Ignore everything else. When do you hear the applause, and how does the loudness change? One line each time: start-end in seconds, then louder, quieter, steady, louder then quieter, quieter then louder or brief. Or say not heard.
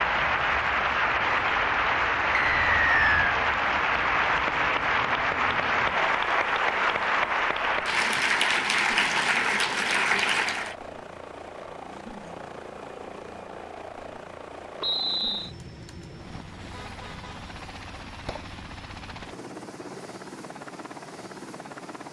0.0-10.8 steady.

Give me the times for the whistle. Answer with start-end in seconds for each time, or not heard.
2.3-3.4, 14.8-15.6.